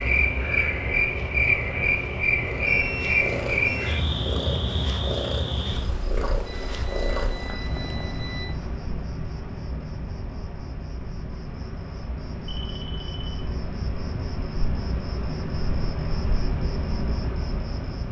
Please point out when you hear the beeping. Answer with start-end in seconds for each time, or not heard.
2.6-4.0, 6.5-8.4, 12.4-13.4.